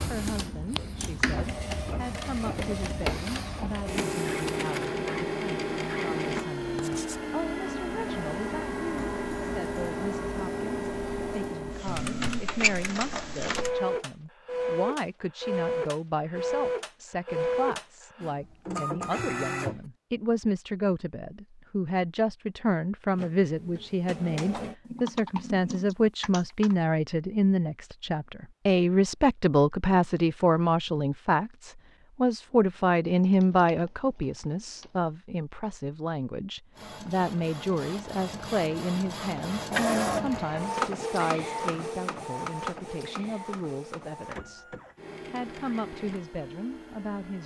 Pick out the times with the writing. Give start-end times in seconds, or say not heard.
6.8-7.2.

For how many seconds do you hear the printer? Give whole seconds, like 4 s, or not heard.
32 s.